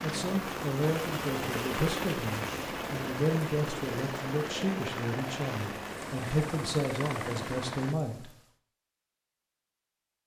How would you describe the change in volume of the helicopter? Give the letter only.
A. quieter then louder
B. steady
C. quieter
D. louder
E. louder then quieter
B.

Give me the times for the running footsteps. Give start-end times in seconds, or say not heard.
not heard.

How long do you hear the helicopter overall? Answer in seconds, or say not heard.
8 s.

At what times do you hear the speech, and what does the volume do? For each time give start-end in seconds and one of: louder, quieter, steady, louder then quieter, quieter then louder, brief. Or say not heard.
0.0-8.3 steady.